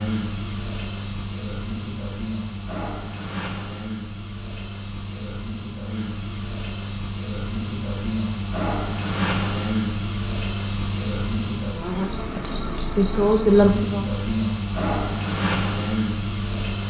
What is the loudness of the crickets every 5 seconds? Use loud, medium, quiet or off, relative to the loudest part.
medium, loud, loud, loud.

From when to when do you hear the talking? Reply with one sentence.
The talking can be heard from 12.3 to 14.1 s.